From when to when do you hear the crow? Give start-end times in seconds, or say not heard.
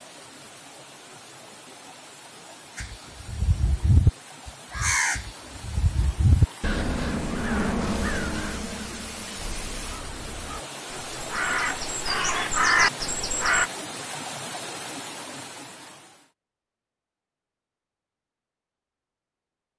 2.8-13.7.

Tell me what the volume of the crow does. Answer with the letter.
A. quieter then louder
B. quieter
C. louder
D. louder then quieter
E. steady
A.